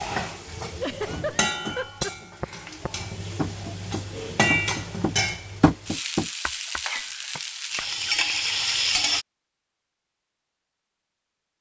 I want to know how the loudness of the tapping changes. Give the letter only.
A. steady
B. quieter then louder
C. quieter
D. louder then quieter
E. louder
D.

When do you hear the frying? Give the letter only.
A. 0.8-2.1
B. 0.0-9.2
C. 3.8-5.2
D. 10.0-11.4
B.